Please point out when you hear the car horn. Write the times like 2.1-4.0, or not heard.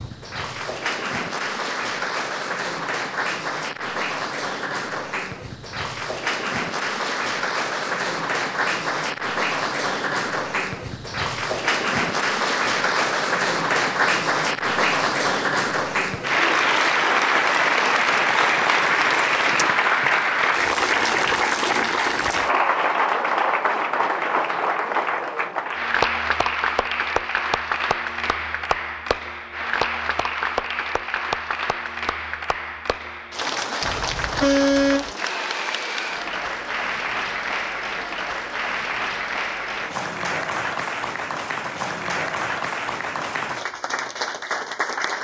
33.8-35.1.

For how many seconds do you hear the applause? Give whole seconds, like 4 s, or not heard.
45 s.